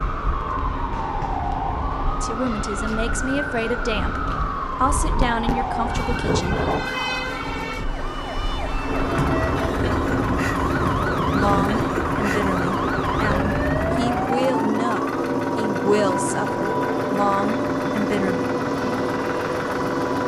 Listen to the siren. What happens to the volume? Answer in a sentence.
The volume of the siren stays about the same.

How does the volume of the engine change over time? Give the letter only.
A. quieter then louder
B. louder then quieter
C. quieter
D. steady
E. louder
E.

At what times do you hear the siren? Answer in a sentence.
You can hear the siren from 0.0 to 20.2 s.